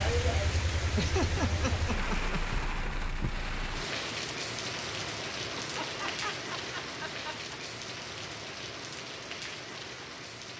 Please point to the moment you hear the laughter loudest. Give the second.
1 s.